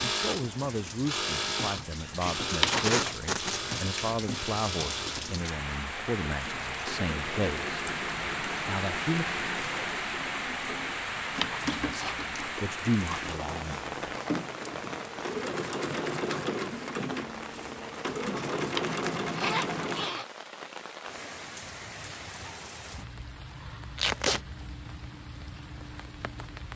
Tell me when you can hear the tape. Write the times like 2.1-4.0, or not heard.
2.2-3.6, 23.9-24.4.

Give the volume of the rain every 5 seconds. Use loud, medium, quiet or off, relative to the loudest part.
medium, loud, loud, medium, medium, medium.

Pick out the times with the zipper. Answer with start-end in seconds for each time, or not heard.
2.6-3.1, 11.4-12.2, 18.8-20.2.